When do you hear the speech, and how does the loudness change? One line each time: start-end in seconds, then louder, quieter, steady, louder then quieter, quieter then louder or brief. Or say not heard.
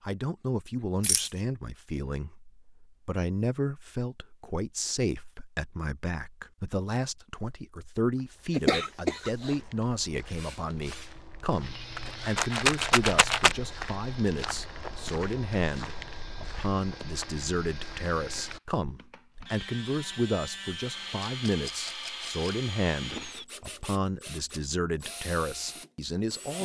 0.0-26.6 steady.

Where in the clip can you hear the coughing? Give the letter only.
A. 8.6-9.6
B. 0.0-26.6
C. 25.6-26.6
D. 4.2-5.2
A.